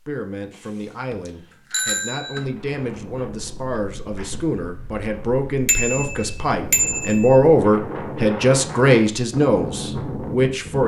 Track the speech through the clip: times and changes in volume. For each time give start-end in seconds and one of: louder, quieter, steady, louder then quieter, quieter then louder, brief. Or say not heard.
0.1-10.8 louder.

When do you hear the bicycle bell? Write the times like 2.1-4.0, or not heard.
0.6-2.5, 5.7-7.4.